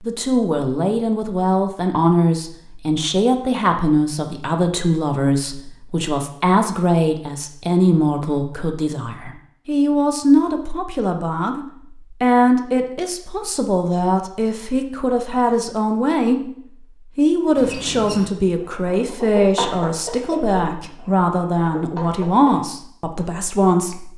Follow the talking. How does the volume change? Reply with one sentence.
The volume of the talking stays about the same.